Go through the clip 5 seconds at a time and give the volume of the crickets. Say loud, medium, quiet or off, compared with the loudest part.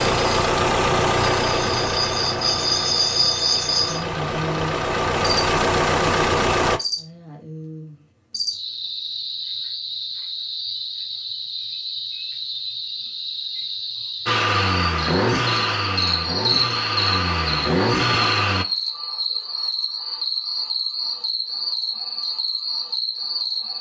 loud, medium, medium, loud, loud.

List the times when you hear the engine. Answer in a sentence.
You can hear the engine from 0.0 to 6.8 s and from 14.2 to 18.6 s.